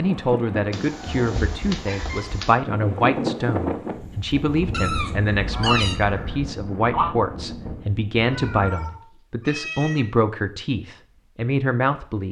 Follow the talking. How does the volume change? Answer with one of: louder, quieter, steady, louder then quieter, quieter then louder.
steady.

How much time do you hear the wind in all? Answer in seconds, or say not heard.
9 s.